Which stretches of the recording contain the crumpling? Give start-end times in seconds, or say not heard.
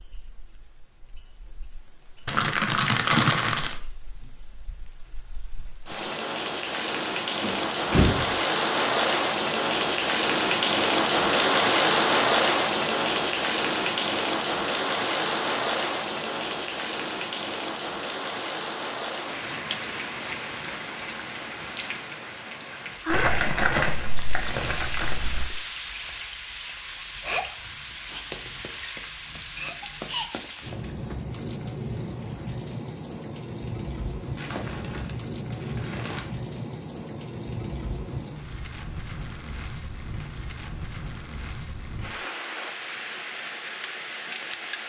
2.2-3.8, 23.1-25.5, 34.4-36.2.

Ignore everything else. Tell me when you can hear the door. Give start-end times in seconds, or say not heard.
7.4-8.3.